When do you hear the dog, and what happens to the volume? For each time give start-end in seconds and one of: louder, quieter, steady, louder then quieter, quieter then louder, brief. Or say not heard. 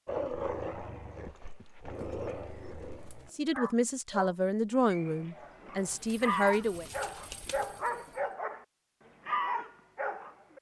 0.1-8.7 louder
9.2-10.5 brief.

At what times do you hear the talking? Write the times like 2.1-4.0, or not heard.
3.3-6.8.